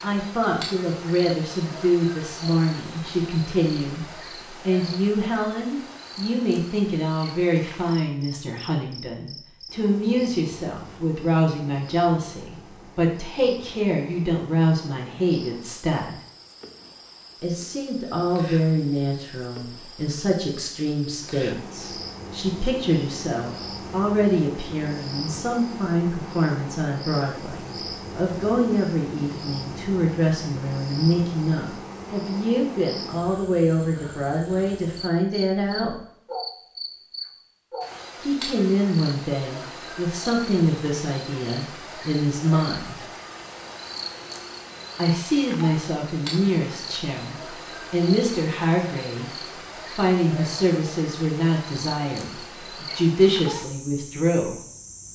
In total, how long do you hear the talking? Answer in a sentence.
You can hear the talking for 49 seconds altogether.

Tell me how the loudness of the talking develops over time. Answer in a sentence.
The volume of the talking stays about the same.